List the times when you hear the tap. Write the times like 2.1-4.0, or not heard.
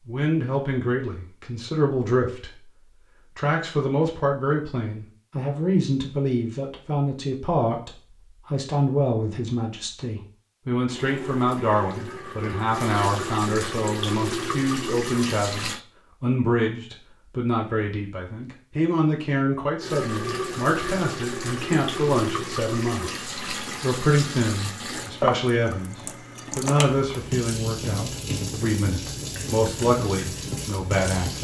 10.8-15.8, 19.8-31.3.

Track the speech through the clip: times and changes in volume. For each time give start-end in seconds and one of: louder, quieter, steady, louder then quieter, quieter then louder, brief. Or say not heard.
0.1-2.7 brief
3.4-31.3 steady.